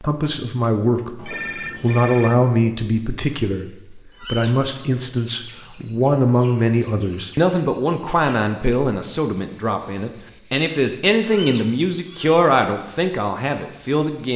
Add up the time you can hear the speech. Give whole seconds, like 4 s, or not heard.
14 s.